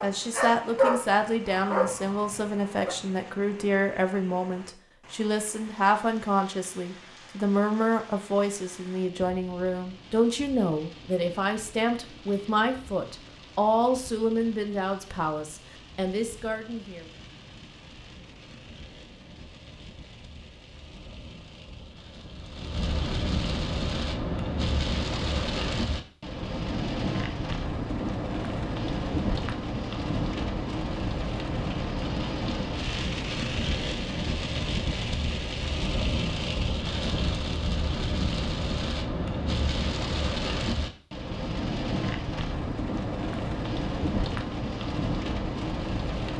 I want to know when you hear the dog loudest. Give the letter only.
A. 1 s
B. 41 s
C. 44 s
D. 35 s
A.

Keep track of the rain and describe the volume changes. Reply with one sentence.
The loudness of the rain goes up.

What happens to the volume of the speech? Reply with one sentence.
The loudness of the speech stays about the same.